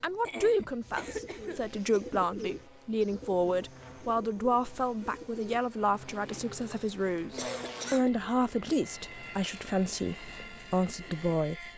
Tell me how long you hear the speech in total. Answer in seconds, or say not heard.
12 s.